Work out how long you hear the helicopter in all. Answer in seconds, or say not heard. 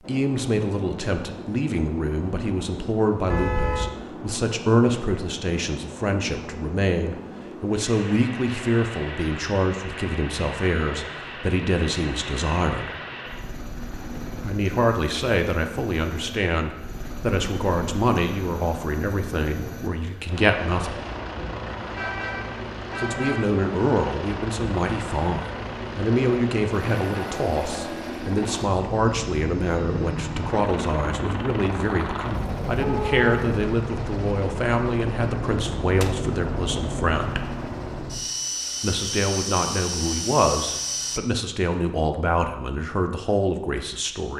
41 s.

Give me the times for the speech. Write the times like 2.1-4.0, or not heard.
0.1-12.9, 14.4-21.0, 22.9-37.5, 38.8-44.3.